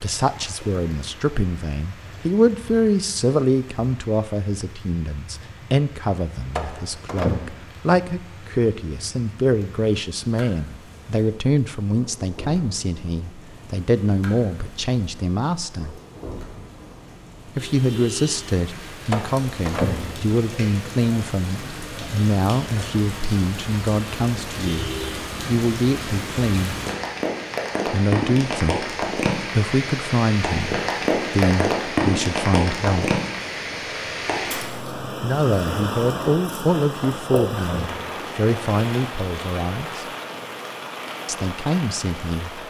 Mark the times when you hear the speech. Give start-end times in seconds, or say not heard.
0.0-16.0, 17.4-26.8, 27.9-33.2, 35.2-40.0, 41.2-42.6.